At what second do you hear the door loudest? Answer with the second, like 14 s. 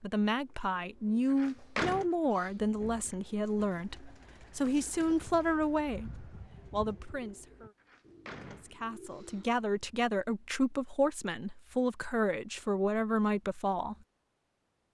2 s.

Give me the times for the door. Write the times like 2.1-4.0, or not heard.
1.3-2.0, 7.8-9.6.